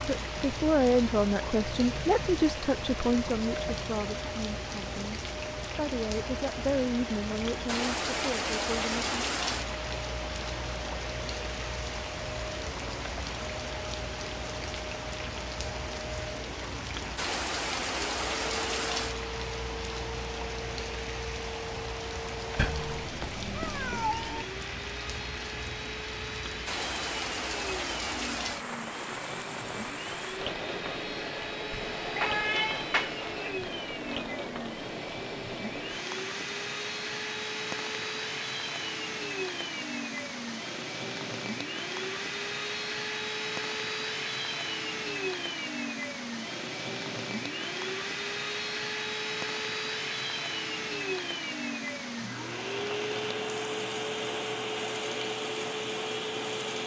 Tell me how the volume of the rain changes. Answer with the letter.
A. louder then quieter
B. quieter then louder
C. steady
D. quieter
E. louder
D.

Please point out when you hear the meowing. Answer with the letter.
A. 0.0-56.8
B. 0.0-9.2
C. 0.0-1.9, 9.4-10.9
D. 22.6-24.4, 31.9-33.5
D.